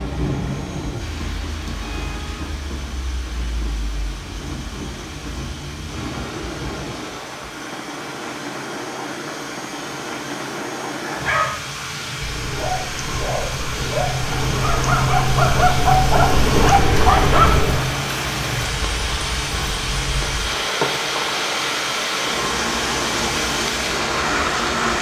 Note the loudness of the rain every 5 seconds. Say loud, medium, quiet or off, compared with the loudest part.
medium, medium, medium, loud, loud.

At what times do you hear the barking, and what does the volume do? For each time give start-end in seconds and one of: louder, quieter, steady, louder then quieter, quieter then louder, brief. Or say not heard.
11.0-17.9 louder.